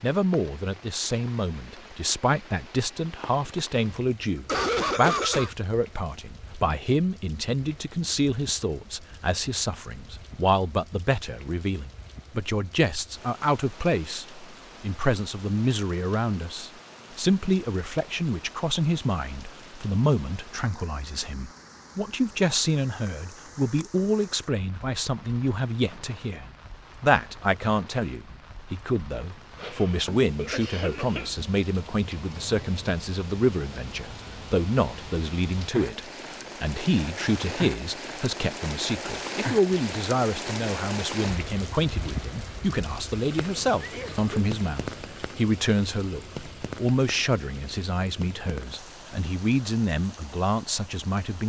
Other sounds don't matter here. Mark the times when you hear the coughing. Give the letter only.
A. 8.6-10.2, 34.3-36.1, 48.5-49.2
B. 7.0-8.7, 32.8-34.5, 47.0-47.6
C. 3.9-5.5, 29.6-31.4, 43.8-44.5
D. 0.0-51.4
C.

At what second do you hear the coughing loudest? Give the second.
5 s.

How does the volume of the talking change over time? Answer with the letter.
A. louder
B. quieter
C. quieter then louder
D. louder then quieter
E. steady
E.